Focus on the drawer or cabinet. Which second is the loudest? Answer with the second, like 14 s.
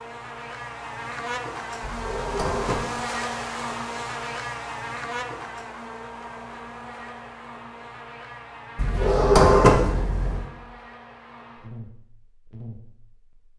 10 s.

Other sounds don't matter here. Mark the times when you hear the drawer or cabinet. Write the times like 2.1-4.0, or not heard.
1.8-2.9, 8.8-10.5.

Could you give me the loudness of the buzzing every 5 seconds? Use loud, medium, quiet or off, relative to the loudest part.
loud, medium, quiet.